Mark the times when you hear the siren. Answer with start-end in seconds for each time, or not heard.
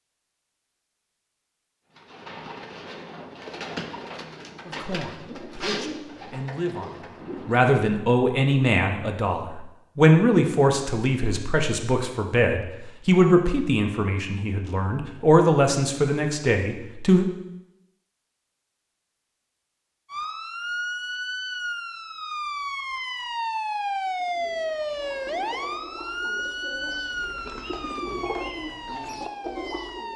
20.1-30.1.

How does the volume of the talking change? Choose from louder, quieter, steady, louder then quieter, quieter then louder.
louder.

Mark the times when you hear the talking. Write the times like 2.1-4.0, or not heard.
4.7-17.2.